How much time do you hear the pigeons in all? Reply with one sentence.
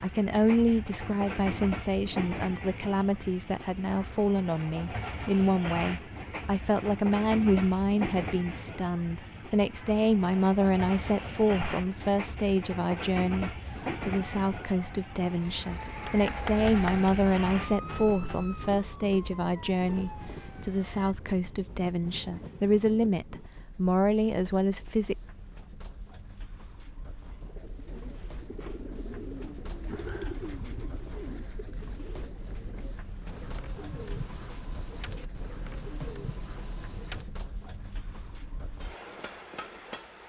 The pigeons can be heard for 10 seconds in total.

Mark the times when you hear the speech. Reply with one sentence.
The speech can be heard from 0.0 to 25.1 s.